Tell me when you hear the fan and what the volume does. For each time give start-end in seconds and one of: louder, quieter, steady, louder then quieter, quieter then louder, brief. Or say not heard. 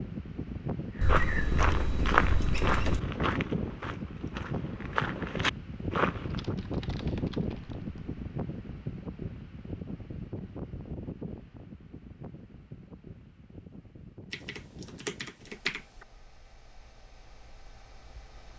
0.0-18.5 quieter.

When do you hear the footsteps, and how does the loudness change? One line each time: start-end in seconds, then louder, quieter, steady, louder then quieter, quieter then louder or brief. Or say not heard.
0.9-6.5 quieter then louder.